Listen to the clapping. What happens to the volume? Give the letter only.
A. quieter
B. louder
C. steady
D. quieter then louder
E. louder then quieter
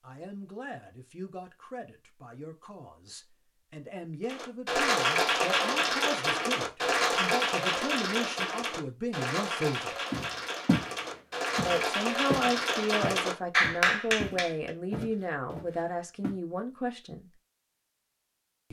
D.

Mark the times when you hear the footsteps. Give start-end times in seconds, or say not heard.
10.1-10.9, 11.6-16.4.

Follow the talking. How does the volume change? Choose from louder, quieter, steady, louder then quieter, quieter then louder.
louder.